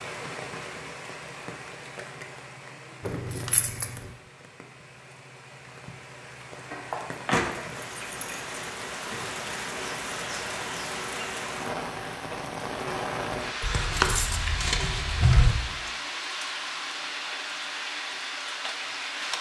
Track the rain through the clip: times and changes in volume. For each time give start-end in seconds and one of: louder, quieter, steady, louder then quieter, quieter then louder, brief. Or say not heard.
0.0-19.3 louder.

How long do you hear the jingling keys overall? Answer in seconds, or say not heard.
5 s.